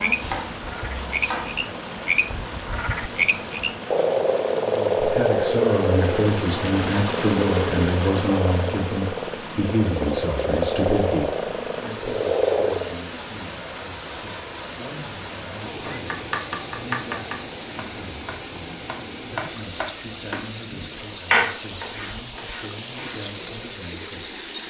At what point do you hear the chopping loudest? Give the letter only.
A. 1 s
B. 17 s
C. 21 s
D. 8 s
C.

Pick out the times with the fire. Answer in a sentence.
The fire can't be heard in this clip.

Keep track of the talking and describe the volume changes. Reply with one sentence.
The volume of the talking goes down.